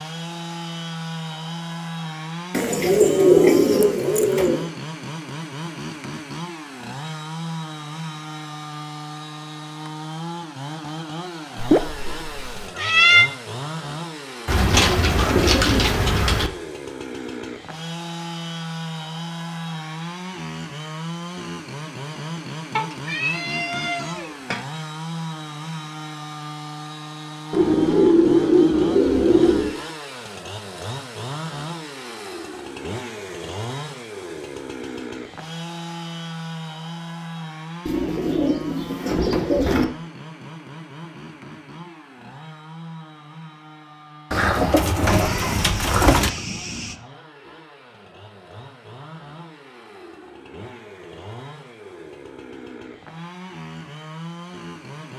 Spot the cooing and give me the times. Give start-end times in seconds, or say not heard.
2.5-4.7, 14.4-16.5, 27.5-29.8, 37.9-39.9, 44.3-46.3.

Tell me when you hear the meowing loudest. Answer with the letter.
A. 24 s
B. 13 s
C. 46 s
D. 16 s
B.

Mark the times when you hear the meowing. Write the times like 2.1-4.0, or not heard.
11.6-13.3, 22.8-24.6, 45.0-47.0.